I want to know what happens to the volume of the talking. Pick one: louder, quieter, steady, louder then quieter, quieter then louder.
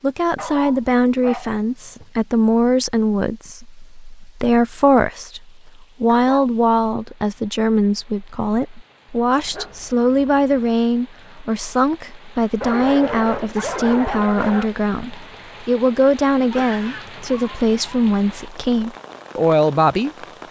steady.